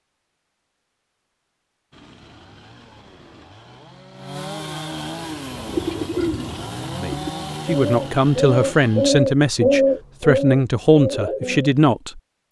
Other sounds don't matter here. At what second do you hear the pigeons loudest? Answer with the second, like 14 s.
10 s.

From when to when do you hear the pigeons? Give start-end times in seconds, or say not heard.
5.5-11.7.